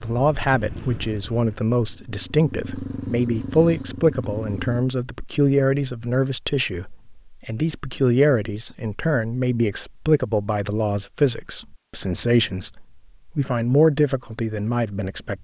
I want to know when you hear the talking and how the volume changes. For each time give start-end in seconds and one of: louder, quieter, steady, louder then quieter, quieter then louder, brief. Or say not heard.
0.0-15.3 steady.